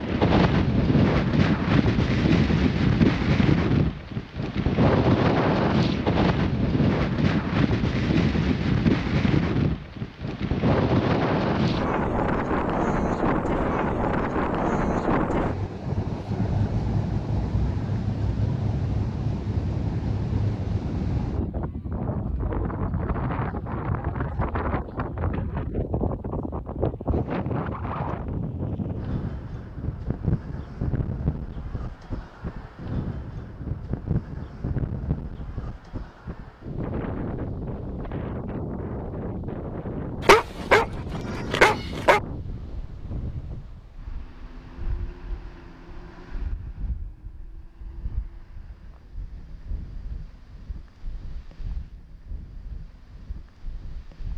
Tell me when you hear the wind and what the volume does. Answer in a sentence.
The wind can be heard from 0.0 to 54.3 s, getting quieter.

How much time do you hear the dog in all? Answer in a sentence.
The dog can be heard for 2 seconds in total.